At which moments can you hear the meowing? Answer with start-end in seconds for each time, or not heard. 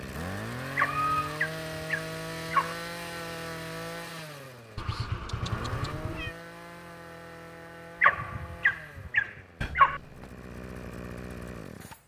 0.8-1.4, 4.8-6.3, 9.6-10.3.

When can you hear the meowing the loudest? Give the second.
1 s.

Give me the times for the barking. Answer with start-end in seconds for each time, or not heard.
0.8-2.8, 8.0-10.0.